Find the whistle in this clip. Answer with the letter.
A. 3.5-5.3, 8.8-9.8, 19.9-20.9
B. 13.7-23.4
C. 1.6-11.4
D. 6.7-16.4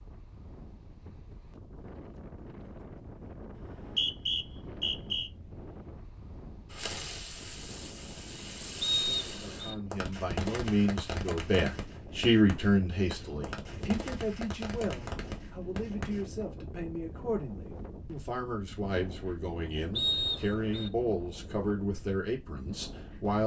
A.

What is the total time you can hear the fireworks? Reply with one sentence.
The fireworks can be heard for 10 seconds in total.